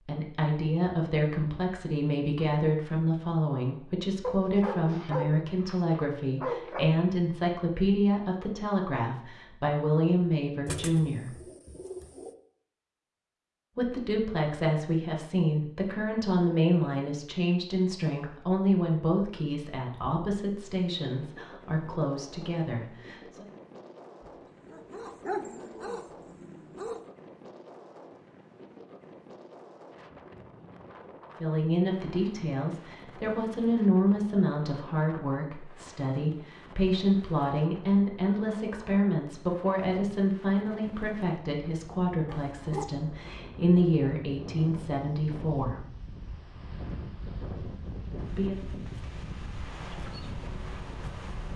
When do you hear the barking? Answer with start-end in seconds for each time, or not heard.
4.2-7.0, 24.2-27.0, 42.2-42.9.